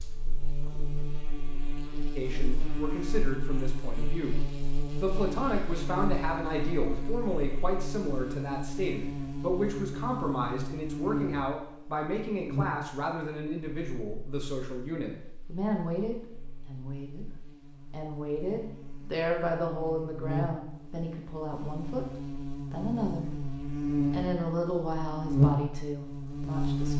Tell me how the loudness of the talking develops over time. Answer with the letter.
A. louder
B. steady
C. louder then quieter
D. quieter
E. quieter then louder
B.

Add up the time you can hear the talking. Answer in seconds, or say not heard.
25 s.